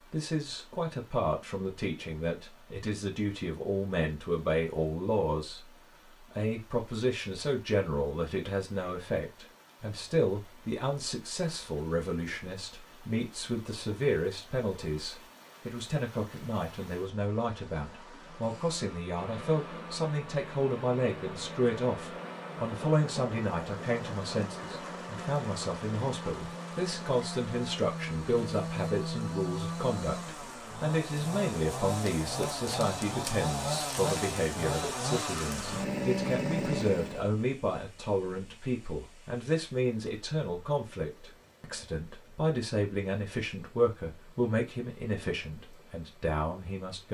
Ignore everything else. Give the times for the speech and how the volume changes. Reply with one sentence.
You can hear the speech from 0.1 to 47.0 s, at a steady volume.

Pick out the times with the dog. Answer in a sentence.
You can't hear the dog here.